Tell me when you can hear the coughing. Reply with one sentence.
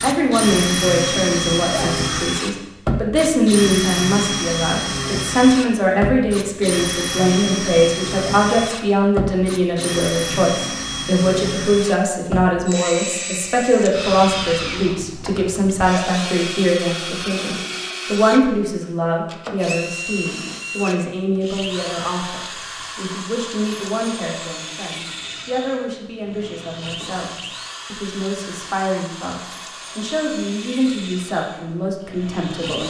You can hear the coughing from 1.6 to 2.3 s.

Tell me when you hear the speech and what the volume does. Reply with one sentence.
You can hear the speech from 0.0 to 32.8 s, getting quieter.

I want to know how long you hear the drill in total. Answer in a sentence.
The drill can be heard for 33 seconds in total.